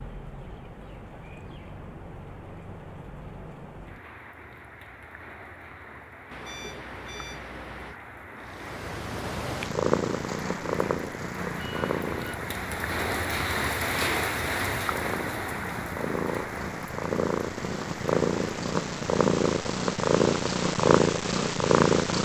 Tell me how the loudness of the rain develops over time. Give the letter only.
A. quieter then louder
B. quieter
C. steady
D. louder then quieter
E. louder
D.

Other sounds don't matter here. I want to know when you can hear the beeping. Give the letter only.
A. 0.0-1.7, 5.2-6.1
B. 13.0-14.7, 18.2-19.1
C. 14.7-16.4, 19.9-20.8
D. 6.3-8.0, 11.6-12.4
D.